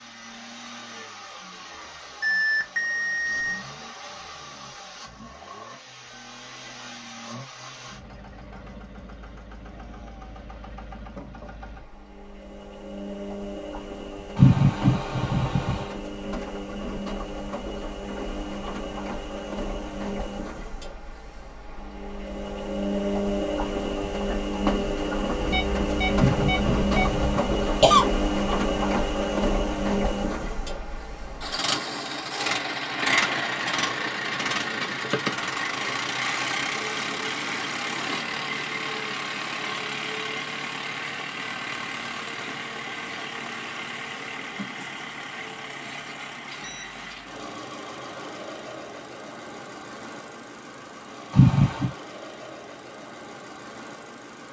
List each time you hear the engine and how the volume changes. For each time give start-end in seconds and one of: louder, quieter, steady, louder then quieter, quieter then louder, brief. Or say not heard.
0.0-54.4 louder then quieter.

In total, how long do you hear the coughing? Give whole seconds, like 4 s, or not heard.
4 s.